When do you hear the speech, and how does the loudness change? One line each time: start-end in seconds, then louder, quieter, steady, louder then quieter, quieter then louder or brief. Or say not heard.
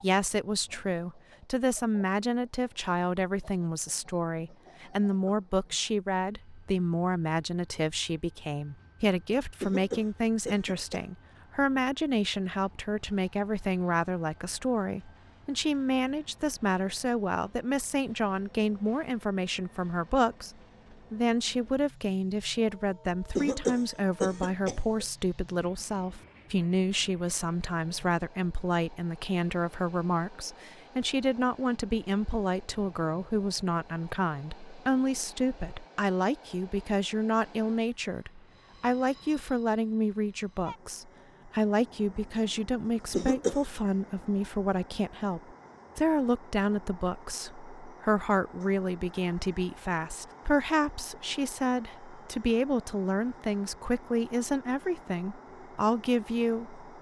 0.0-56.8 steady.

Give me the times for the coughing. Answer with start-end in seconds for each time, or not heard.
9.6-11.1, 23.4-25.1, 43.1-43.6.